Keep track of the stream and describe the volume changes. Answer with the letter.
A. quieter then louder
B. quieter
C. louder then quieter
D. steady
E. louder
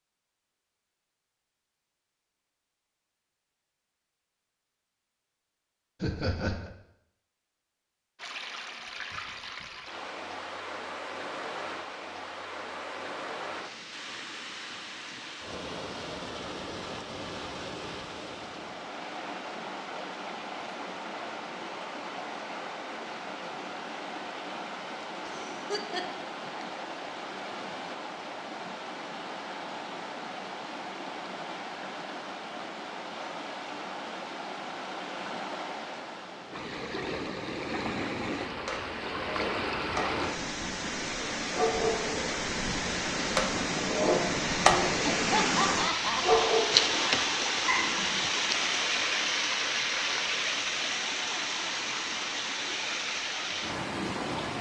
E.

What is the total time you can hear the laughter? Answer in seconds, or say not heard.
3 s.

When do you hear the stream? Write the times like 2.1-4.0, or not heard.
8.2-54.5.